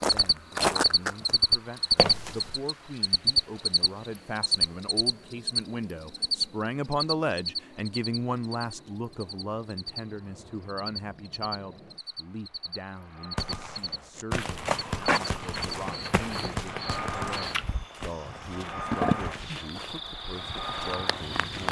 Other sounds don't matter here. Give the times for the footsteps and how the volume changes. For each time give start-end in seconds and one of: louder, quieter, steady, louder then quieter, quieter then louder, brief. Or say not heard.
0.0-1.4 brief
1.9-2.6 brief
14.2-21.6 quieter.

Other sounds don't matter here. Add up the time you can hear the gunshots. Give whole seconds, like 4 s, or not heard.
4 s.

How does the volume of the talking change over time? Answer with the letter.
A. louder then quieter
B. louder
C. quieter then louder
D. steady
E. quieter
A.